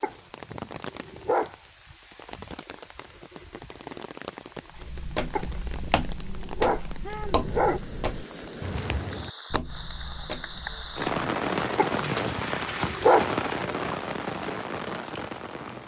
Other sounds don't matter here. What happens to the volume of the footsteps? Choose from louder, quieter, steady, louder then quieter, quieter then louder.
quieter.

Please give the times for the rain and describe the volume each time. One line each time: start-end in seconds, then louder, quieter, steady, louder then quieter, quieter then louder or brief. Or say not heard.
0.0-15.8 louder.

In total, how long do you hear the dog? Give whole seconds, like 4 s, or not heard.
6 s.